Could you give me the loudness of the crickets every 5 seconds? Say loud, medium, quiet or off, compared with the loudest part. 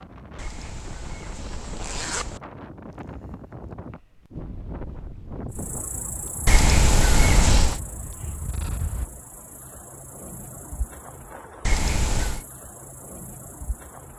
off, loud, loud.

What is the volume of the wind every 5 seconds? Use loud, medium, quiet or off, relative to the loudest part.
loud, loud, off.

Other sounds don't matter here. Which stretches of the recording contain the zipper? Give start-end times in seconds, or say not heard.
0.3-2.4, 6.5-7.8, 11.7-12.4.